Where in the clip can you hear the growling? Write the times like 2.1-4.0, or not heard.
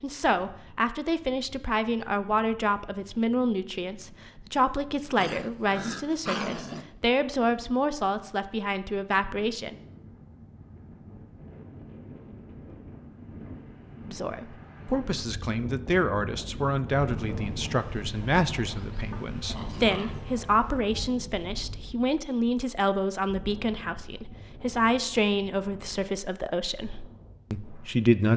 5.2-6.8, 18.9-20.2.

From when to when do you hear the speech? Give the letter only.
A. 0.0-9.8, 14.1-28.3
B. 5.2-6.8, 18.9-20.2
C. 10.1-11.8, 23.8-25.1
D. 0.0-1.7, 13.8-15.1
A.